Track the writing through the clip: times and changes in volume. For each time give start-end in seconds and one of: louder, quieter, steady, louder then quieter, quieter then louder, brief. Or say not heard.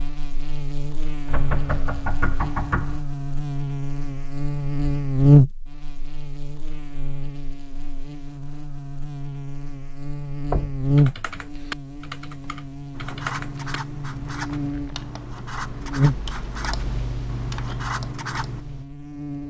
12.9-18.6 steady.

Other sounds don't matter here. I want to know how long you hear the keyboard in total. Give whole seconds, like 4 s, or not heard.
8 s.